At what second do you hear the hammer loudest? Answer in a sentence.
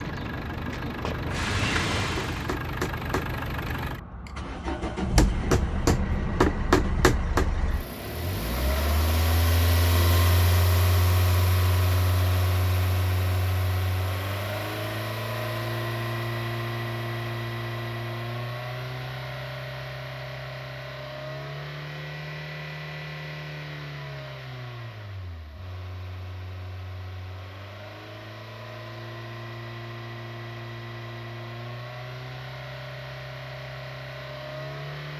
The volume of the hammer peaks at 7 seconds.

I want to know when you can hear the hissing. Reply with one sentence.
The hissing can be heard from 0.0 to 2.5 s.